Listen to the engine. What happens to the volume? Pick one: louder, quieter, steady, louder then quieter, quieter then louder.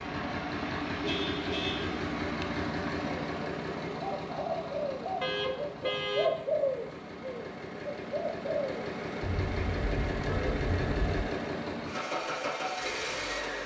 quieter then louder.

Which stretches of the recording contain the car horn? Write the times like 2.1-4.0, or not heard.
1.0-2.5, 5.2-6.4, 9.2-11.2.